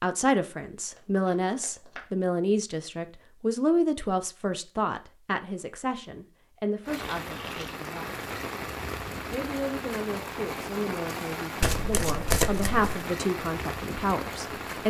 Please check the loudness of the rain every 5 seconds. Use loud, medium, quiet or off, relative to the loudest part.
off, loud, loud.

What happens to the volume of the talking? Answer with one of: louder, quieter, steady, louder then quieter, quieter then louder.
quieter then louder.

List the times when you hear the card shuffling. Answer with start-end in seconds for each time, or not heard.
0.9-2.0, 7.2-7.8, 11.6-13.1.